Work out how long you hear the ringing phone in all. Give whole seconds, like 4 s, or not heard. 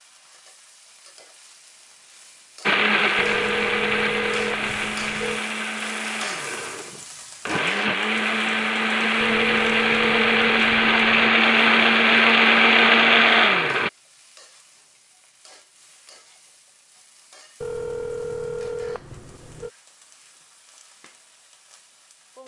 7 s.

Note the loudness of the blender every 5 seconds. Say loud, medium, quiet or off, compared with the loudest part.
medium, medium, loud, off, off.